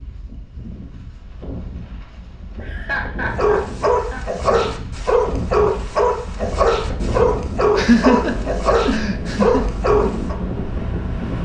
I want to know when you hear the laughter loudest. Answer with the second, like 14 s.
8 s.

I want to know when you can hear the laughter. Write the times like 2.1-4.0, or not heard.
2.6-4.2, 7.8-9.7.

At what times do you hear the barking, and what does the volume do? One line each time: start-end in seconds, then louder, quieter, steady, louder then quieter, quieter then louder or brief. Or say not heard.
3.4-10.3 steady.